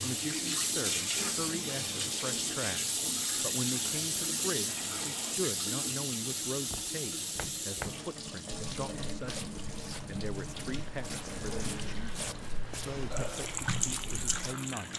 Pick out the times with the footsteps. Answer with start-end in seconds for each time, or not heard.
6.5-14.6.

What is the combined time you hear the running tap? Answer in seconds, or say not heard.
15 s.